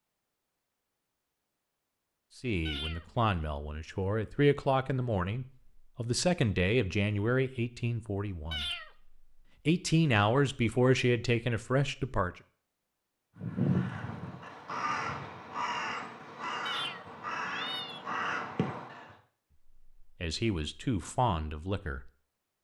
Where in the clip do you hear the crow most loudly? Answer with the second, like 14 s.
14 s.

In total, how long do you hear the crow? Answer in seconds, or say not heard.
6 s.